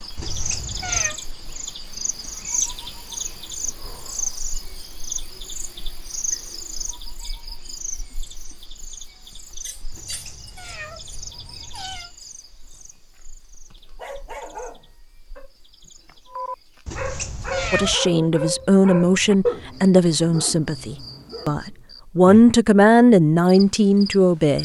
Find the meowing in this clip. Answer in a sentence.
The meowing can be heard from 0.1 to 1.2 s, from 9.9 to 12.1 s and from 16.9 to 17.9 s.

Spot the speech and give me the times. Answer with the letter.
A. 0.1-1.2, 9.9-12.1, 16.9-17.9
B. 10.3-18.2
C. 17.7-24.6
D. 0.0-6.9
C.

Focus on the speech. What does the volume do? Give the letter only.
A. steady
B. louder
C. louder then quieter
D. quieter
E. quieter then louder
E.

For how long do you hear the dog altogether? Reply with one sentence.
You can hear the dog for 8 seconds altogether.